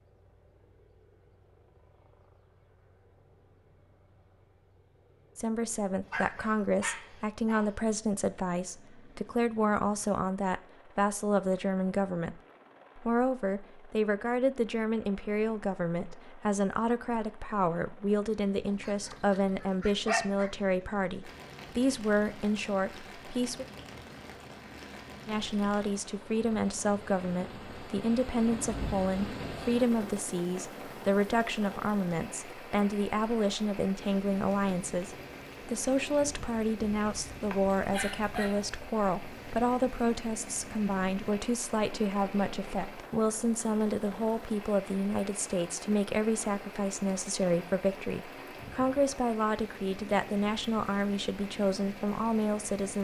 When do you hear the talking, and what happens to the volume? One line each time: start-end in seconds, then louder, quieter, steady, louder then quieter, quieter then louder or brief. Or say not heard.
5.3-23.6 steady
25.2-52.9 steady.